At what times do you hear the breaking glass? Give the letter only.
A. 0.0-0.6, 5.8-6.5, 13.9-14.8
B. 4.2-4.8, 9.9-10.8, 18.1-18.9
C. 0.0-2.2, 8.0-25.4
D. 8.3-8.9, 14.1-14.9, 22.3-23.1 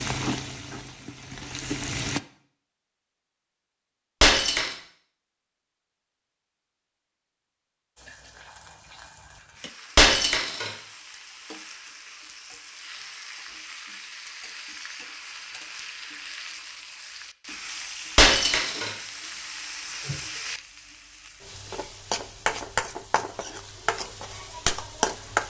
B.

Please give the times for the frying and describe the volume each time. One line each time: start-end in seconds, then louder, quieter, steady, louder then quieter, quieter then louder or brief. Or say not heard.
0.0-2.2 brief
8.0-25.4 louder.